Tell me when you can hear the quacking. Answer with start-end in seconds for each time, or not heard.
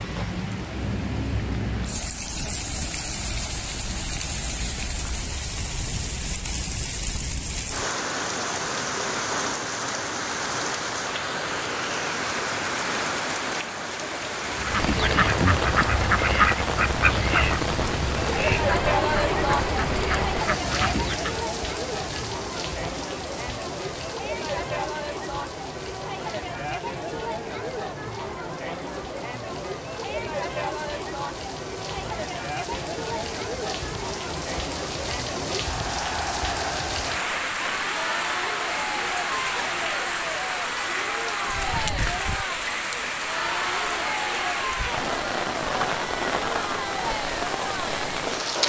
14.4-21.4.